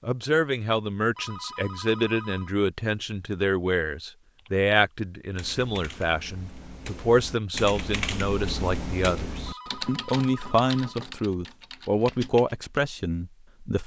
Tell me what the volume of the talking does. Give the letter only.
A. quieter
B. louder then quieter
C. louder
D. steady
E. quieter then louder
D.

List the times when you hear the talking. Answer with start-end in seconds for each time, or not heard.
0.0-13.8.